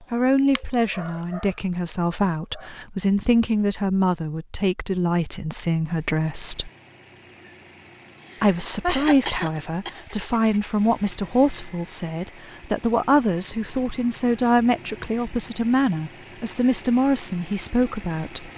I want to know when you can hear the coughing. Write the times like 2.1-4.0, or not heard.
8.3-9.9.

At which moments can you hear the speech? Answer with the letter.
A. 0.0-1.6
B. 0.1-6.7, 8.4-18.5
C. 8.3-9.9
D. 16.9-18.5
B.